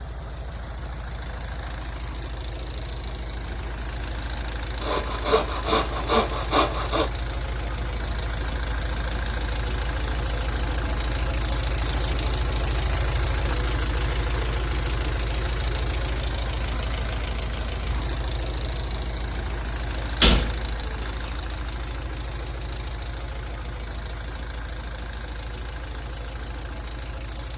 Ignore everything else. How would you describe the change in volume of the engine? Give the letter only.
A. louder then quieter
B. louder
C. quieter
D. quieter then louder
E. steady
A.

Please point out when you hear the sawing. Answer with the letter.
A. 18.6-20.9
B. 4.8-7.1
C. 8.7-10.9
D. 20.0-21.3
B.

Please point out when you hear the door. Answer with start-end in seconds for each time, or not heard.
20.0-21.3.